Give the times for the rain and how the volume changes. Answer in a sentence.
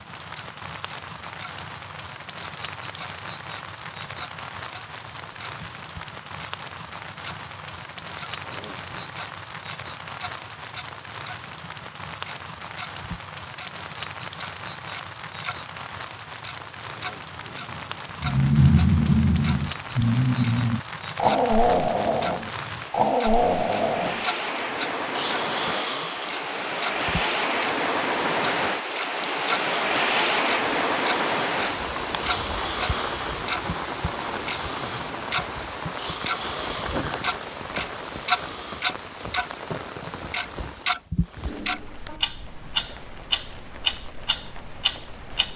You can hear the rain from 0.0 to 45.5 s, getting louder then quieter.